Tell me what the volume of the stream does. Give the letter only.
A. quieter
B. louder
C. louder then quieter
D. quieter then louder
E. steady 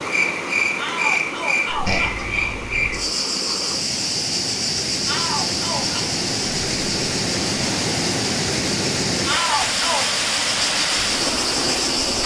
B.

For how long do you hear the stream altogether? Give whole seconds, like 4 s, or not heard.
12 s.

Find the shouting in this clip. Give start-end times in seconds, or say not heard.
0.8-2.5, 5.0-6.0, 9.2-10.1.